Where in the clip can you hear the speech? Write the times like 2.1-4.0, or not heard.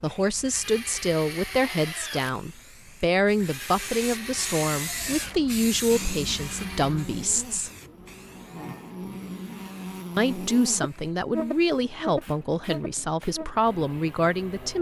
0.0-7.7, 10.2-14.7.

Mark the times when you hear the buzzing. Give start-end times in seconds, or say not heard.
5.9-14.7.